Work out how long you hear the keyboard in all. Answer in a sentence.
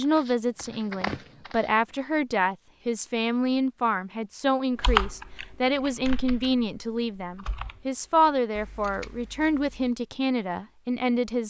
You can hear the keyboard for 5 seconds altogether.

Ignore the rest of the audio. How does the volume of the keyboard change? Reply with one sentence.
The loudness of the keyboard goes down, then up.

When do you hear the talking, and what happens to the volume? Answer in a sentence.
You can hear the talking from 0.0 to 11.4 s, at a steady volume.